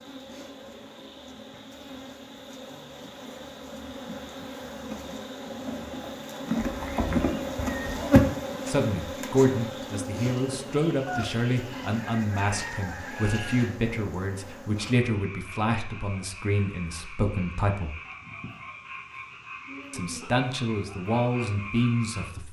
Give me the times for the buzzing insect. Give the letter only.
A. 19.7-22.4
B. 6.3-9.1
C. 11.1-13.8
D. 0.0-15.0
D.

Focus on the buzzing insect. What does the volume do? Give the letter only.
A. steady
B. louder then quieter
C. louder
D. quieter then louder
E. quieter
B.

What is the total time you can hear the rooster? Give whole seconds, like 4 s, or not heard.
3 s.